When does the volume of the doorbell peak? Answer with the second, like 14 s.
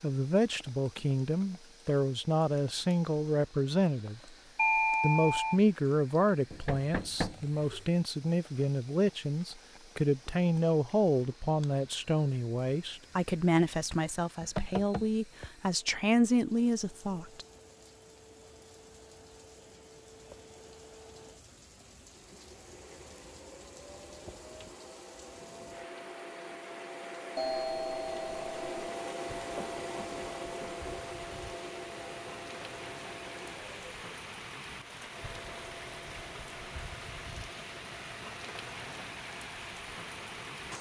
5 s.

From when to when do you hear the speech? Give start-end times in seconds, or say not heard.
0.0-4.2, 5.0-17.4.